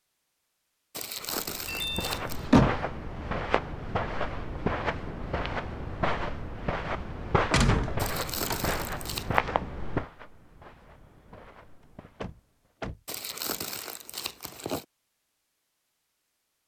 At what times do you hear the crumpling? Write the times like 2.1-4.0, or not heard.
0.9-2.5, 8.0-9.4, 13.1-14.8.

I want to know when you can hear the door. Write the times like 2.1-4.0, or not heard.
1.6-2.9, 7.5-8.8, 12.2-13.0.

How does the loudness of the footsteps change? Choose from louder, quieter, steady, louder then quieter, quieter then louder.
quieter.